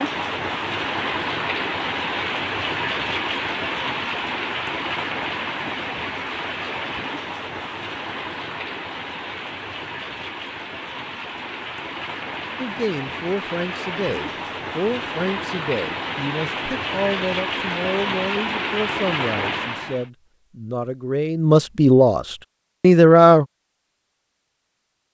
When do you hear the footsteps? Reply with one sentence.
The footsteps can't be heard in this clip.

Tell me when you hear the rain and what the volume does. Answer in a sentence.
The rain can be heard from 0.0 to 20.1 s, getting quieter then louder.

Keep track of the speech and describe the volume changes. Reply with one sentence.
The loudness of the speech goes up.